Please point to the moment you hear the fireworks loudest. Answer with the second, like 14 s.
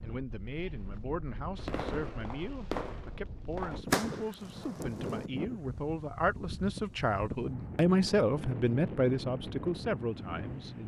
4 s.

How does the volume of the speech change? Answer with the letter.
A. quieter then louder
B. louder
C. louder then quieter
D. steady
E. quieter
B.